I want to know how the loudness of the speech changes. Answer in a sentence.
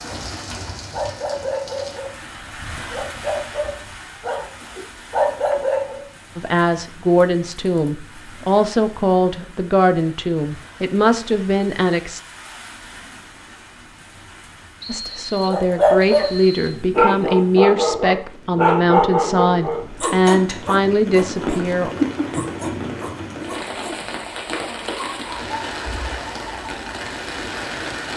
The loudness of the speech stays about the same.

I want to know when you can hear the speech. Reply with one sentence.
You can hear the speech from 6.3 to 12.2 s and from 14.8 to 21.9 s.